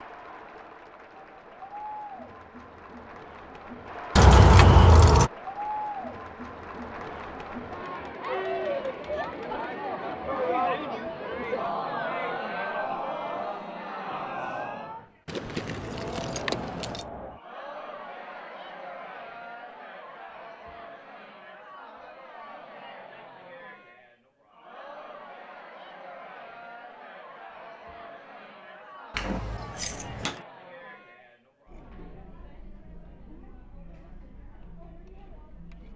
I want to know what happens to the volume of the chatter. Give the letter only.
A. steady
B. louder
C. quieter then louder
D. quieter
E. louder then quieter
E.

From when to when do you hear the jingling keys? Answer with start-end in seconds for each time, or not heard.
4.2-5.3, 15.2-17.1, 29.1-30.4.